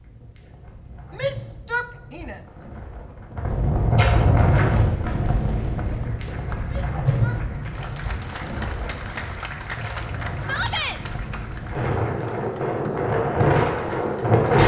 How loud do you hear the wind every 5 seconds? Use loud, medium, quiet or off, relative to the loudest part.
loud, medium, loud.